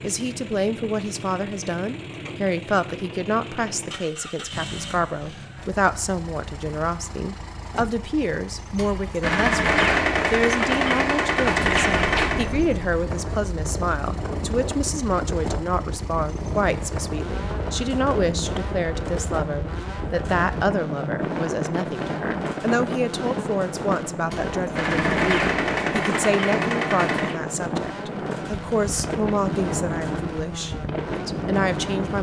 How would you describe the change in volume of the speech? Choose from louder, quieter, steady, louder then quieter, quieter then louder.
steady.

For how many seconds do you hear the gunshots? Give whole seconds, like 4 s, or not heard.
7 s.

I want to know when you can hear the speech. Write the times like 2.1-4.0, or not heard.
0.0-32.1.